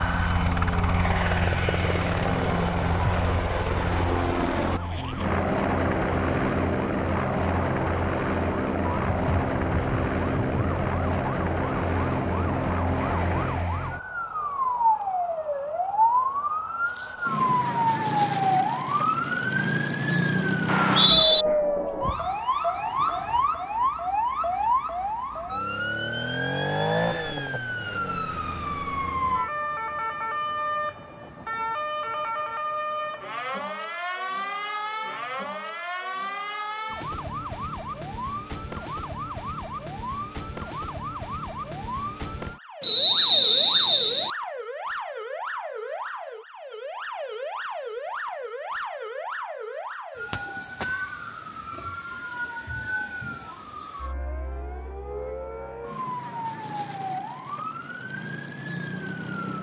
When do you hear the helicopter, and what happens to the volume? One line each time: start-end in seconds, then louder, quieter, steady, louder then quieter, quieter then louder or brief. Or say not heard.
0.0-13.7 steady.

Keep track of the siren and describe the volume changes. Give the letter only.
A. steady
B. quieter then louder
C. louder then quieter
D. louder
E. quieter
C.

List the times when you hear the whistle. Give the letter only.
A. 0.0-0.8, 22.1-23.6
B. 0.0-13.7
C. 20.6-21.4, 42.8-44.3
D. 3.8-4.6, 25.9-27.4
C.